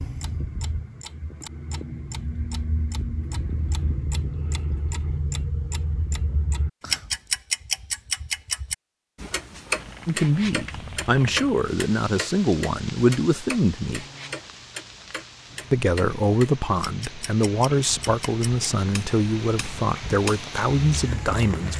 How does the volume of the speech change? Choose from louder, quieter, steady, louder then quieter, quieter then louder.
steady.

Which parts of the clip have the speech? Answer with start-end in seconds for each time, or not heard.
10.1-14.1, 15.7-21.7.